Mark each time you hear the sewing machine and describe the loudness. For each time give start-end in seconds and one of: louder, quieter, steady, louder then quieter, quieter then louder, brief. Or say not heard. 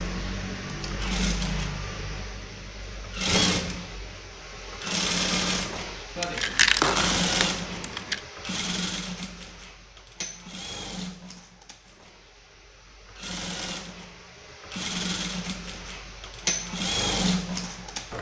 0.0-18.1 quieter then louder.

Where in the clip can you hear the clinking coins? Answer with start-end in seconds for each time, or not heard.
6.2-8.2.